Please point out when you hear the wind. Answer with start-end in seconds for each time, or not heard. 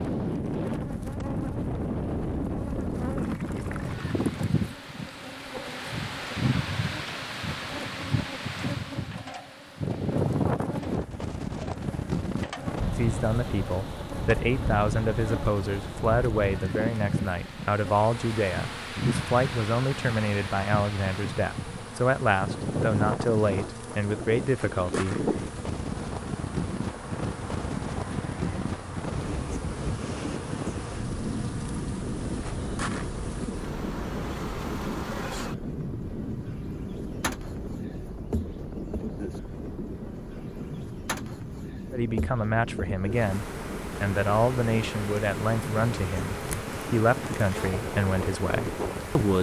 0.0-49.2.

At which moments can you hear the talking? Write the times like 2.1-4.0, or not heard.
12.9-25.2, 41.9-49.3.